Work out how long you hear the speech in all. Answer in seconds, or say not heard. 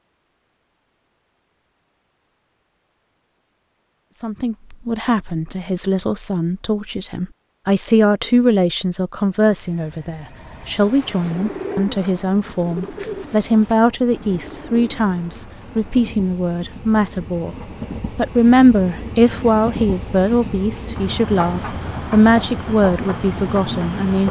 20 s.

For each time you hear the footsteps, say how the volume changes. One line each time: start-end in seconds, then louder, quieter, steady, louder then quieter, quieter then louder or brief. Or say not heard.
not heard.